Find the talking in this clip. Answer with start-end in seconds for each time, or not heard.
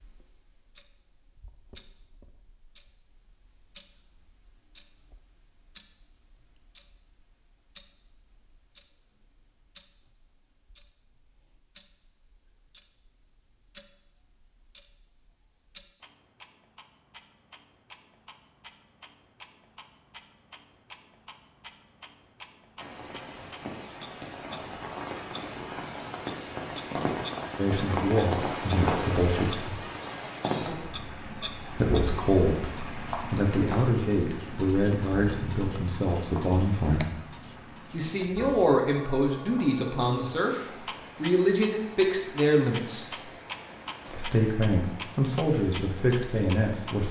27.6-29.8, 31.8-37.1, 37.9-43.1, 44.1-47.0.